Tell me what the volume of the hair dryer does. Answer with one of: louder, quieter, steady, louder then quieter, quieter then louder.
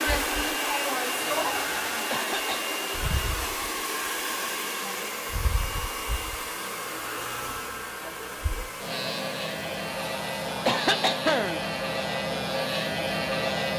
quieter.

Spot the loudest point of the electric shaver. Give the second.
13 s.